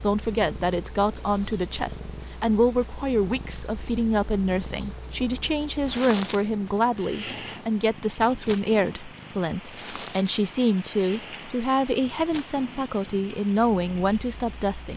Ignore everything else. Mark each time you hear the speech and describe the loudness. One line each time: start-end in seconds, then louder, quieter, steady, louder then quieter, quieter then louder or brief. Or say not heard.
0.0-14.9 steady.